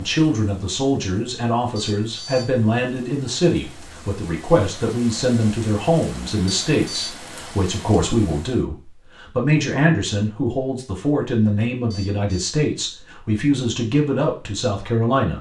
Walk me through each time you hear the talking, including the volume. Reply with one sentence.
You can hear the talking from 0.0 to 15.3 s, at a steady volume.